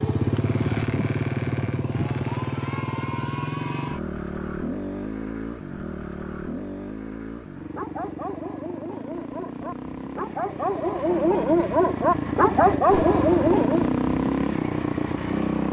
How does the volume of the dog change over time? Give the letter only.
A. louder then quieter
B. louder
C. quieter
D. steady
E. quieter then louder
B.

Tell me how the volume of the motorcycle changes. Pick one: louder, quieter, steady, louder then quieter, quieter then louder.
quieter then louder.